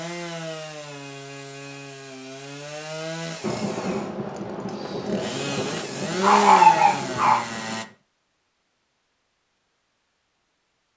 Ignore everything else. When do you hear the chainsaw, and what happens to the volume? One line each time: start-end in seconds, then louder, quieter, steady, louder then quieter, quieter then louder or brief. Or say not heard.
0.0-7.8 louder.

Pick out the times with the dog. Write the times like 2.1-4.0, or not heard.
5.6-7.5.